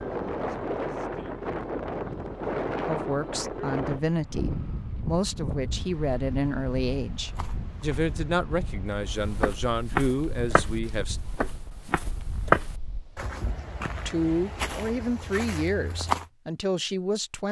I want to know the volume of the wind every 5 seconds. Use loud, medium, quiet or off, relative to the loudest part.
loud, medium, quiet, off.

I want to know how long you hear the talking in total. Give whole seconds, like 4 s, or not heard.
12 s.